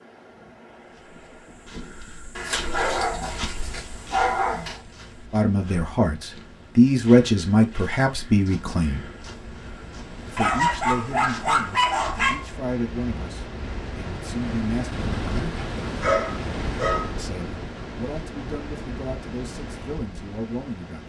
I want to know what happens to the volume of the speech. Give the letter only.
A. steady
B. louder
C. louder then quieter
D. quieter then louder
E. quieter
E.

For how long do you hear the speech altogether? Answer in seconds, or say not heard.
13 s.